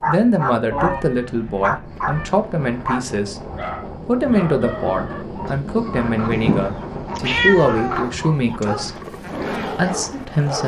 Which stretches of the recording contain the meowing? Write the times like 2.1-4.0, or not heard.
0.7-2.3, 6.3-8.2.